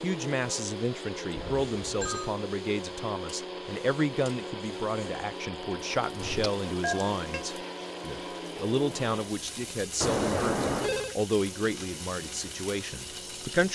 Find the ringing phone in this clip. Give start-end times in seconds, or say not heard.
1.4-2.3, 6.2-7.4, 10.0-11.2.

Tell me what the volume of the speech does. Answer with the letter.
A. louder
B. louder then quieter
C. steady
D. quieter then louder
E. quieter
C.